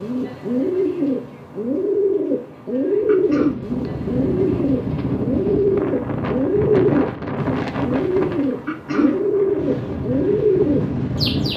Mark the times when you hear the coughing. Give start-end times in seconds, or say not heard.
3.0-3.6, 8.7-9.2.